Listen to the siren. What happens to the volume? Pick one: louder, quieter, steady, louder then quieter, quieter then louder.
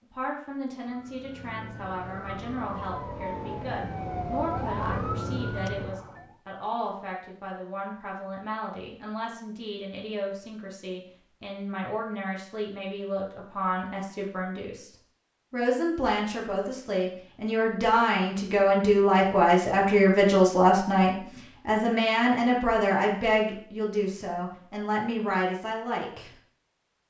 louder.